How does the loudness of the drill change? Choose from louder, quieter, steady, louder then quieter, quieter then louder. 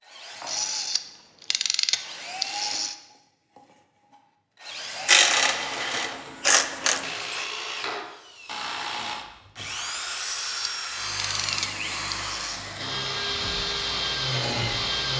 louder.